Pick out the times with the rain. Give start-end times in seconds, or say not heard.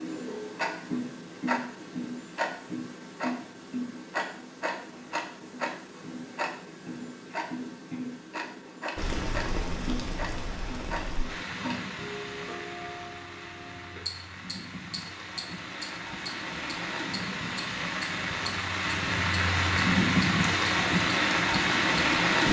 8.9-22.4.